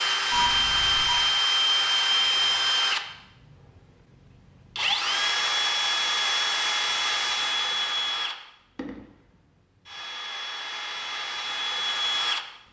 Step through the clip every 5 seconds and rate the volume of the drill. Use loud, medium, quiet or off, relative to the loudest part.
loud, loud, medium.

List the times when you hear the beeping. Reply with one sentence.
You can hear the beeping from 0.3 to 1.2 s.